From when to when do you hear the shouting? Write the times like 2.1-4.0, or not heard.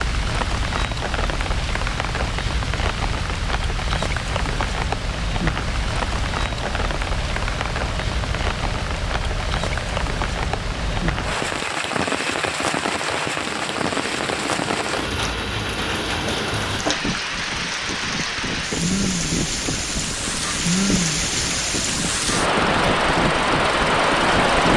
not heard.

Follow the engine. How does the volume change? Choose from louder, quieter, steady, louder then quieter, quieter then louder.
louder.